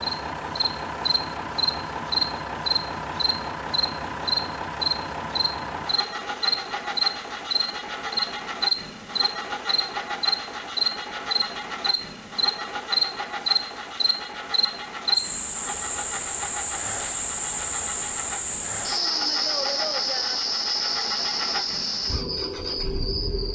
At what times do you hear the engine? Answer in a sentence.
The engine can be heard from 0.0 to 23.4 s.